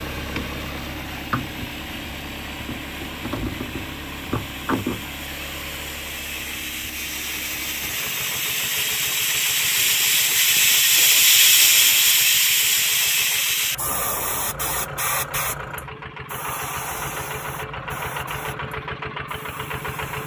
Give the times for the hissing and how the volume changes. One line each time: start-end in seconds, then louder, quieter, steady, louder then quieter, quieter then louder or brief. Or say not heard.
0.0-20.2 louder then quieter.